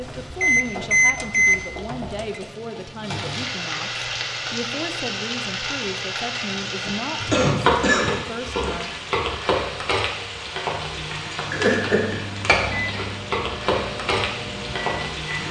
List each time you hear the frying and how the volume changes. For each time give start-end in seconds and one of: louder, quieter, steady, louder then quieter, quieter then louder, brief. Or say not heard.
0.0-15.4 louder.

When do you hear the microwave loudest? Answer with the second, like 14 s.
1 s.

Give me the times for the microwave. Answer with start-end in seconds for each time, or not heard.
0.0-2.4, 11.4-15.4.